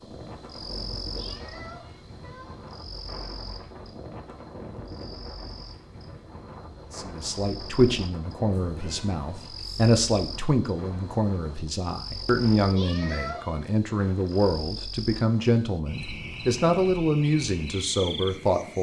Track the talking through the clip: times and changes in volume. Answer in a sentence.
The talking can be heard from 6.9 to 18.7 s, at a steady volume.